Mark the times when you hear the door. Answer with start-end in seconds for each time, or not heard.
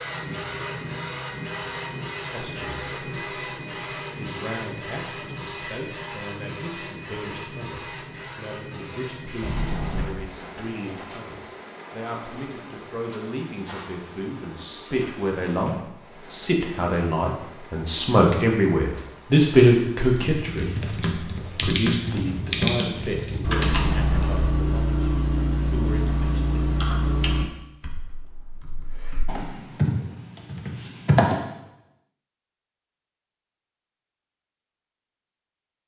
9.4-10.2, 23.6-24.5.